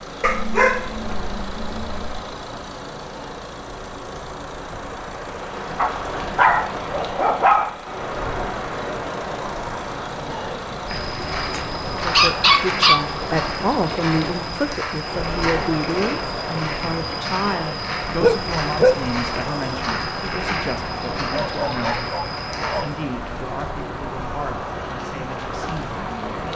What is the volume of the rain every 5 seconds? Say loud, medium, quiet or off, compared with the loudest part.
medium, loud, loud, loud, loud, loud.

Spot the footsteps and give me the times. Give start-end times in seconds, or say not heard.
10.8-22.9.